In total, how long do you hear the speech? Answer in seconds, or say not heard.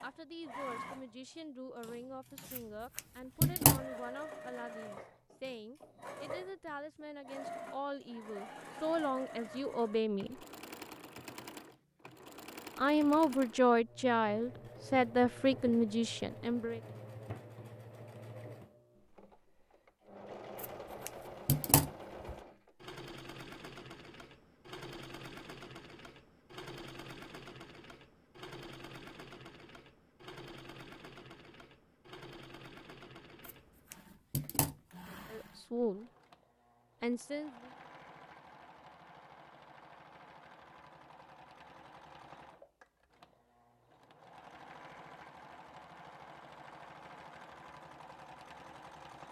16 s.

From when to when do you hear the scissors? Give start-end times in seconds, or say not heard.
2.5-3.9, 20.6-22.4, 33.5-34.8.